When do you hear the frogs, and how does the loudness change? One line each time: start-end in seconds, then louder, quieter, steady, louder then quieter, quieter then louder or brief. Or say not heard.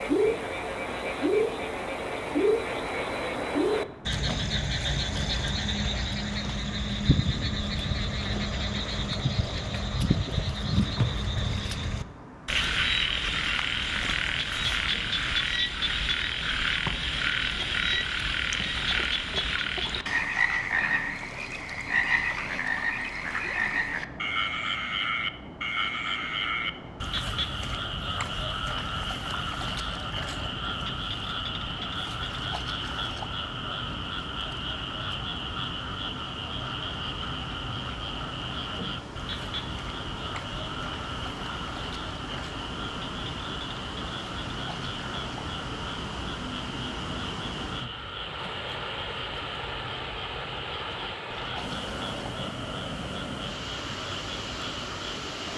0.0-55.5 quieter.